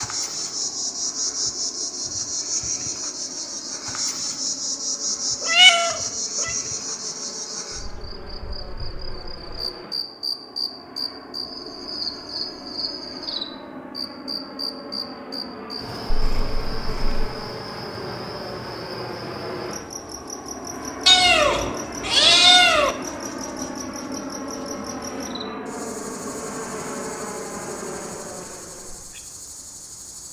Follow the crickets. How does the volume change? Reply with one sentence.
The loudness of the crickets goes down.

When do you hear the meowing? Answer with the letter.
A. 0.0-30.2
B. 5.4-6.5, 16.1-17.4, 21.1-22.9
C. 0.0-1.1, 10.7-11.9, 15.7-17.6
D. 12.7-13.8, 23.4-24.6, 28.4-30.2
B.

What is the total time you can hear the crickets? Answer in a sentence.
The crickets can be heard for 30 seconds in total.